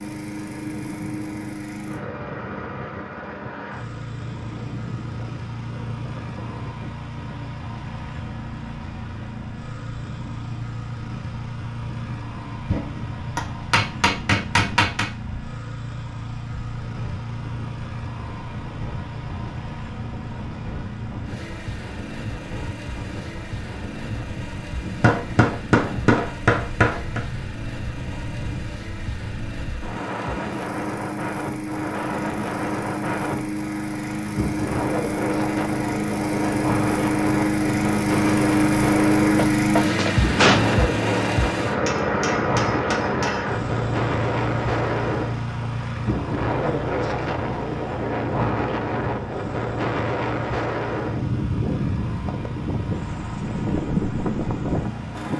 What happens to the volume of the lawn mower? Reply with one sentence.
The loudness of the lawn mower goes up, then down.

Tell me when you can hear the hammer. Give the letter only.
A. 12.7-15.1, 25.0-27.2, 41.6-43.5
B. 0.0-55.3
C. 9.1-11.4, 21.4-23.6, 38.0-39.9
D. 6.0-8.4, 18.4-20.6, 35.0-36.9
A.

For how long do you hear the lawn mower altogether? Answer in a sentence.
You can hear the lawn mower for 55 seconds altogether.